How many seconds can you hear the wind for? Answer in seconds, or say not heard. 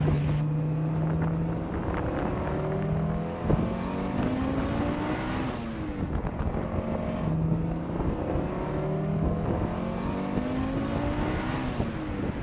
12 s.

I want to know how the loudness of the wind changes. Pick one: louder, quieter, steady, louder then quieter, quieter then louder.
steady.